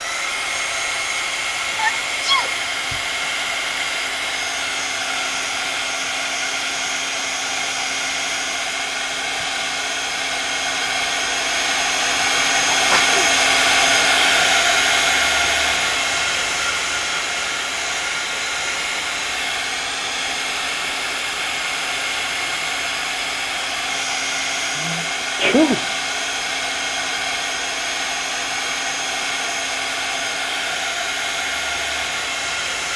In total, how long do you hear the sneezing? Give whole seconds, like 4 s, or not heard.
3 s.